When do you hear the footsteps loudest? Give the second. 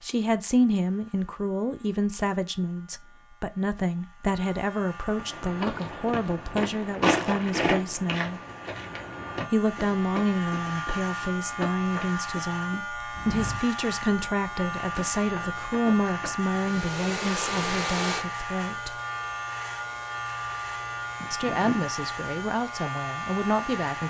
7 s.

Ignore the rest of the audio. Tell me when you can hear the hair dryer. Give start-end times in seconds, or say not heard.
16.6-24.0.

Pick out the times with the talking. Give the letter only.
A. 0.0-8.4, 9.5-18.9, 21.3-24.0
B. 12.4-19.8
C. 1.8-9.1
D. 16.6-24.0
A.